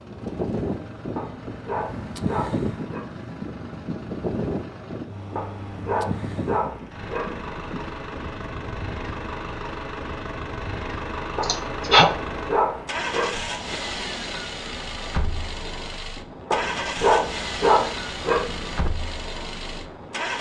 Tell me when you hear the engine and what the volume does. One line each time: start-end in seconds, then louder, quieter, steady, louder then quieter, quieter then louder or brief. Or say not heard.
0.0-20.3 louder.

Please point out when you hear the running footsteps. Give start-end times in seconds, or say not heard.
not heard.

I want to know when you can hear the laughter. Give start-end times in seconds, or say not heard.
11.4-12.1.